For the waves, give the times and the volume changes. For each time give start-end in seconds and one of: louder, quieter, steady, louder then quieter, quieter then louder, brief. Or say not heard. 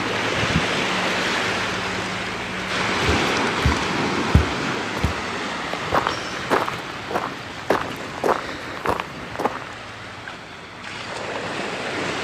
0.0-12.1 quieter.